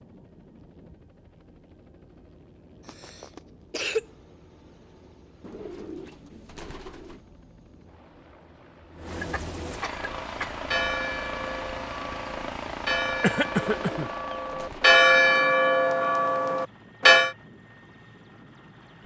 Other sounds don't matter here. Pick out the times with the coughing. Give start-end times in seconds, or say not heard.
2.9-4.0, 9.1-10.7, 13.2-14.1.